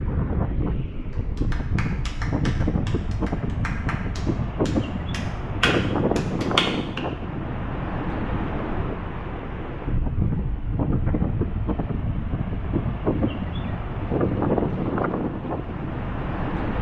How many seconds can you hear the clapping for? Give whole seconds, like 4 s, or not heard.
6 s.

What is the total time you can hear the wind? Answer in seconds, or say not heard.
17 s.